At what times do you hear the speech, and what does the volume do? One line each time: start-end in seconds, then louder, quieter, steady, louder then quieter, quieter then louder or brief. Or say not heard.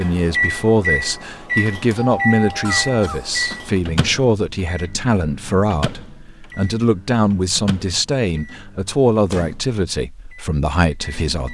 0.0-11.4 steady.